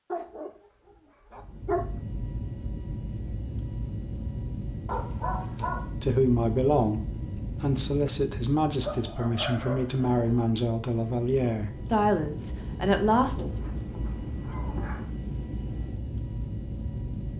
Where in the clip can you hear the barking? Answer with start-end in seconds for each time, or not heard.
0.1-0.5, 1.3-1.9, 4.8-5.9, 8.8-10.6, 13.3-15.1.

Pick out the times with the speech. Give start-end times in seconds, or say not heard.
6.0-13.4.